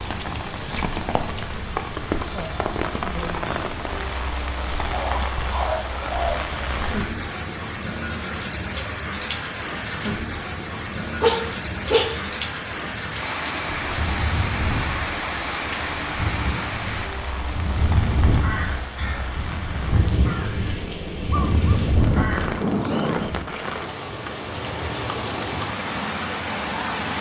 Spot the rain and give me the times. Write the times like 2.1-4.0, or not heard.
0.0-27.1.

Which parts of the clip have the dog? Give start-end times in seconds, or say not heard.
4.9-6.5, 11.2-12.2, 21.3-23.4.